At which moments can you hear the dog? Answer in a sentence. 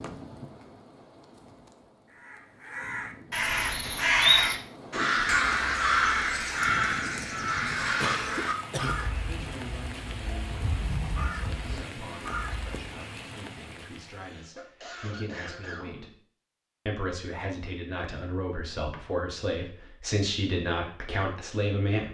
You can't hear the dog here.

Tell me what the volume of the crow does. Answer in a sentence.
The volume of the crow goes down.